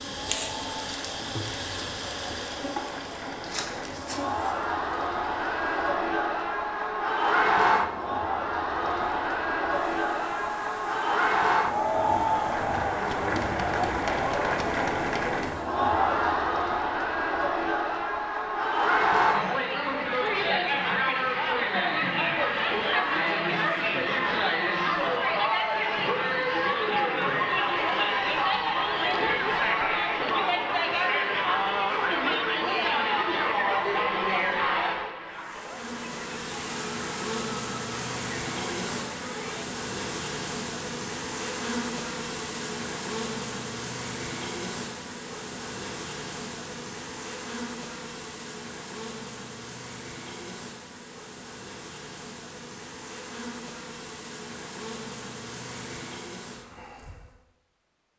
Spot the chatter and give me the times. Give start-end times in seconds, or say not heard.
0.1-39.6.